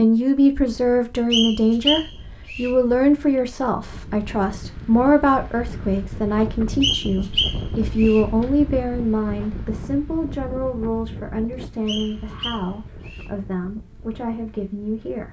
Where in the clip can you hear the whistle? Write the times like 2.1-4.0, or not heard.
1.3-2.7, 6.8-8.2, 11.8-13.3.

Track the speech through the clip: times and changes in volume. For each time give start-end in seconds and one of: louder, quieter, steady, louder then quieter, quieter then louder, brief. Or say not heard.
0.0-15.2 quieter.